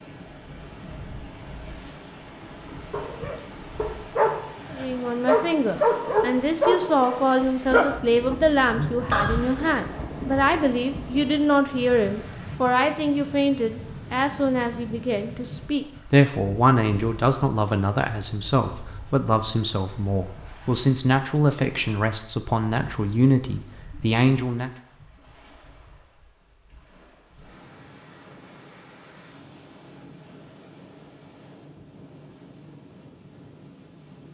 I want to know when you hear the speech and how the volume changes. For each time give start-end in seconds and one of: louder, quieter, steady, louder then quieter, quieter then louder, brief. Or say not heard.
4.7-24.7 steady.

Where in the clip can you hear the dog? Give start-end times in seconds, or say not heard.
2.9-9.8.